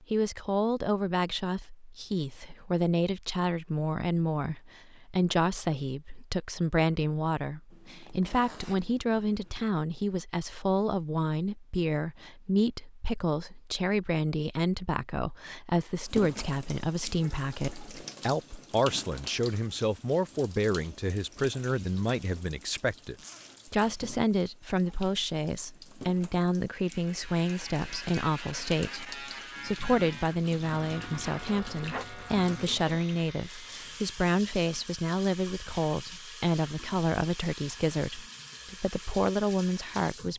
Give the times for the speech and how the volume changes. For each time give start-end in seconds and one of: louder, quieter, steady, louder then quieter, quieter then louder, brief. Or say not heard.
0.0-40.3 steady.